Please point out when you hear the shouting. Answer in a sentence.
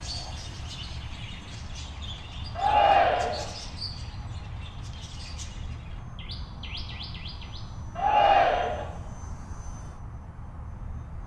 You can hear the shouting from 2.5 to 3.5 s and from 8.0 to 8.8 s.